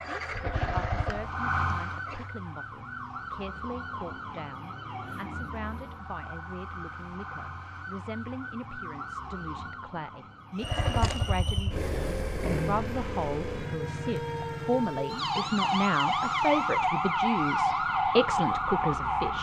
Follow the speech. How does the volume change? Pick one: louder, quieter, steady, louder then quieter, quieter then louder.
louder.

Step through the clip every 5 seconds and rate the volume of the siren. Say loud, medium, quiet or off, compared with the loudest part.
medium, quiet, quiet, loud.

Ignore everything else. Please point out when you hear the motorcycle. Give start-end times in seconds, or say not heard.
0.0-2.3, 10.6-19.3.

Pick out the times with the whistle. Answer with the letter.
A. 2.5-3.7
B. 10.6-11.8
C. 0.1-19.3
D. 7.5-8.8
B.